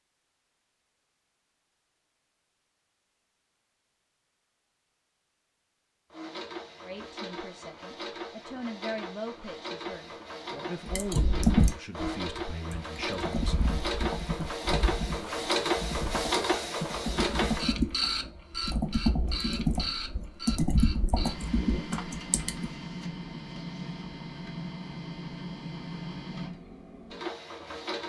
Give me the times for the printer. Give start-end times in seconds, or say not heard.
6.1-28.0.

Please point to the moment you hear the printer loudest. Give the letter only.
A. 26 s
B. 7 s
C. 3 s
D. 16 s
D.